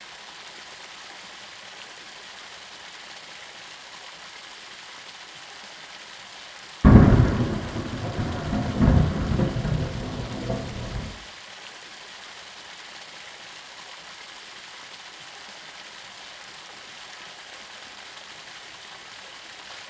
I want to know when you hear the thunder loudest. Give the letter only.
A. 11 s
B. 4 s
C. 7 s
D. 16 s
C.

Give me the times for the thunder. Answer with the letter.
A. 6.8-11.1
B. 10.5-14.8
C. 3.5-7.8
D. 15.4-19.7
A.